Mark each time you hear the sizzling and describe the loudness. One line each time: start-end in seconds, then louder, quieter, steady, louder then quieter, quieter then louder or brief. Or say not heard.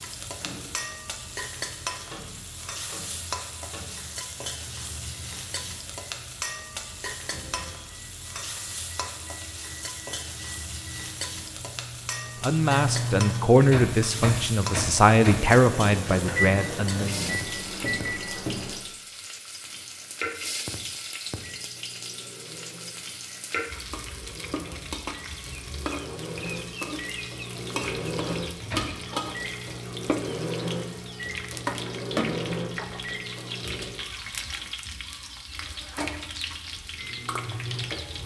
0.0-38.2 steady.